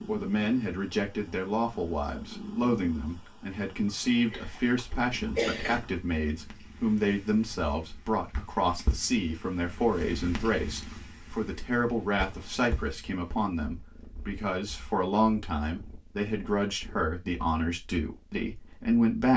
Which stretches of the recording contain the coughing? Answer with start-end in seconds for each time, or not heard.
3.9-5.8, 12.2-12.7.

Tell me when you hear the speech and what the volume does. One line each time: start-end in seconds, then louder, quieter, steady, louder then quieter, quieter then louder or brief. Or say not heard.
0.1-19.3 steady.